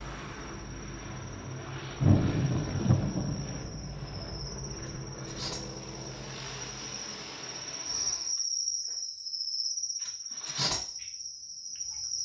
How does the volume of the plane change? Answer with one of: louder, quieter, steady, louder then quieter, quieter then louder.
steady.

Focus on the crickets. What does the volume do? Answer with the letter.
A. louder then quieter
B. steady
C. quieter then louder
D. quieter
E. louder
E.